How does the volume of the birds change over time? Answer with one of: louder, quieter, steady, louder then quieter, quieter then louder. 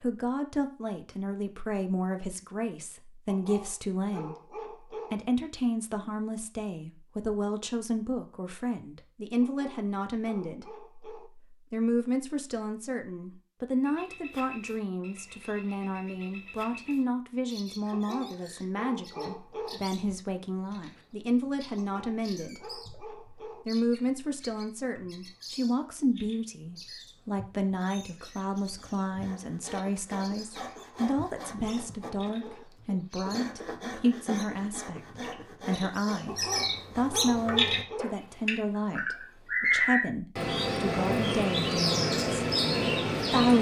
louder.